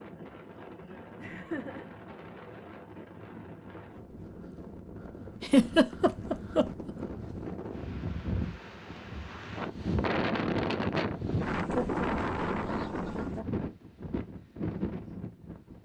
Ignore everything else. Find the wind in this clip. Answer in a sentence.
You can hear the wind from 0.0 to 15.7 s.